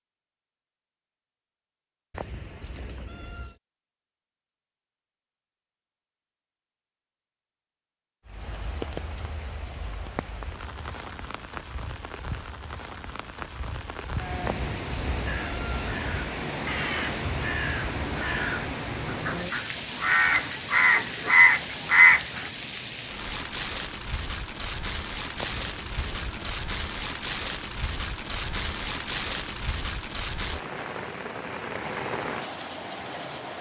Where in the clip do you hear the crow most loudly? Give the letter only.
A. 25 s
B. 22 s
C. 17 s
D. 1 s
B.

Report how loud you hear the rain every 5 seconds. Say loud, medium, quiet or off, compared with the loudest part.
off, medium, medium, loud, loud, loud, loud.